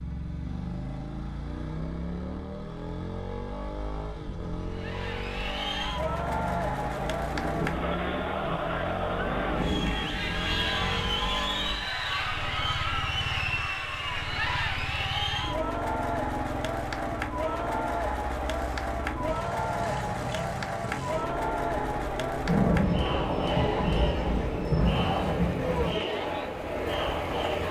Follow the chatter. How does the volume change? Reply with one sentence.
The loudness of the chatter stays about the same.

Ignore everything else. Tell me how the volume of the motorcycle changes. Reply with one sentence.
The loudness of the motorcycle stays about the same.